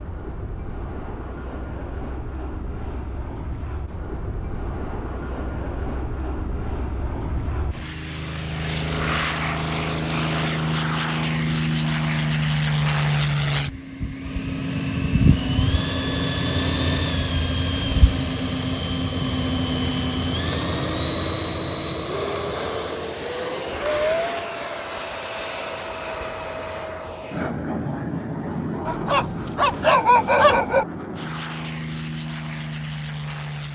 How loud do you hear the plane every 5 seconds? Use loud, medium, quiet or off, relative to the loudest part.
quiet, medium, loud, loud, loud, medium, medium.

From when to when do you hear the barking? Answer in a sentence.
You can hear the barking from 28.9 to 30.9 s.